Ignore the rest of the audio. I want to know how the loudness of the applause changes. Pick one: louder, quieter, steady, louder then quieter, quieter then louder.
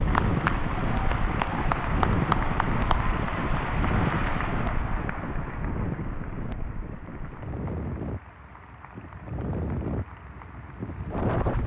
quieter.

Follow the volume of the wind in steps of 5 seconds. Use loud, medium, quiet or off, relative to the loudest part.
loud, medium, loud.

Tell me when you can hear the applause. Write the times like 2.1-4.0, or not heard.
0.0-11.6.